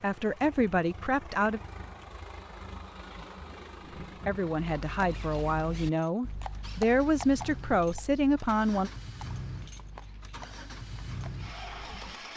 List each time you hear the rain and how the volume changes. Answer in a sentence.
The rain can't be heard in this clip.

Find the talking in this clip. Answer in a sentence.
The talking can be heard from 0.0 to 1.6 s and from 4.2 to 8.9 s.